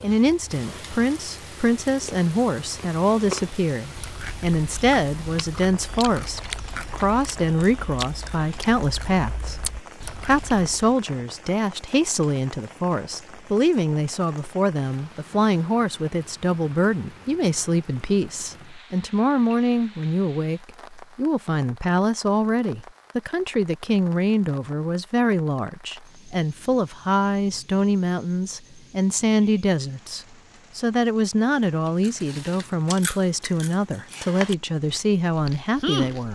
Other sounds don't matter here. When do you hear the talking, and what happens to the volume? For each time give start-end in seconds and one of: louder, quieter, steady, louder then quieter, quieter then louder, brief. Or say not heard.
0.0-36.3 steady.